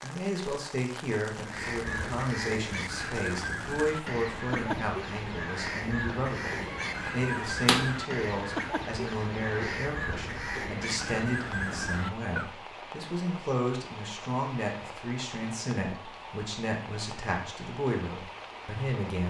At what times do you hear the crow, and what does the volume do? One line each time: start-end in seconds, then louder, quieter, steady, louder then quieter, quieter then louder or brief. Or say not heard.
1.4-12.5 steady.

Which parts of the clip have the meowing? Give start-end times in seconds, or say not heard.
6.6-8.0.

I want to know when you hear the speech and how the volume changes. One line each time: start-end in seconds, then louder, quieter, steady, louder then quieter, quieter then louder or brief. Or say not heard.
0.0-19.2 steady.